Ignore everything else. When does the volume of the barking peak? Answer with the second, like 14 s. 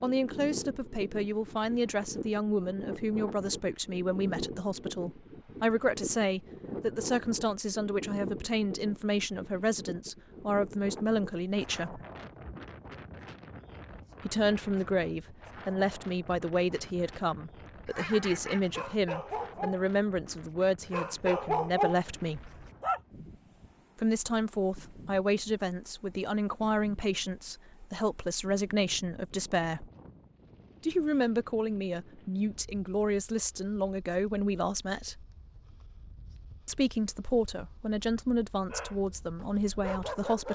22 s.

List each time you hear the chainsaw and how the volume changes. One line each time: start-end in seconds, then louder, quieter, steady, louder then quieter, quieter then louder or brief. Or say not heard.
not heard.